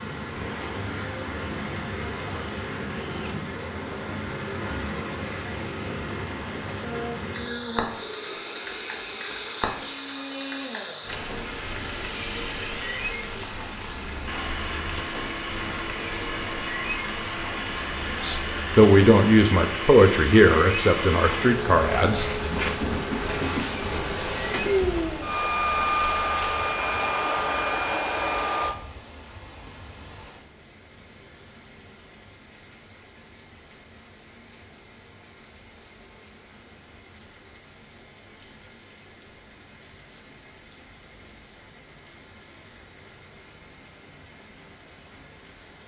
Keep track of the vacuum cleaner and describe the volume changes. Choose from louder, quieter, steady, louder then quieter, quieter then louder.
louder.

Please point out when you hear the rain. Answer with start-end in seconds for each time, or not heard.
0.0-45.8.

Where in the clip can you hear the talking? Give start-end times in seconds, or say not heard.
18.2-22.2.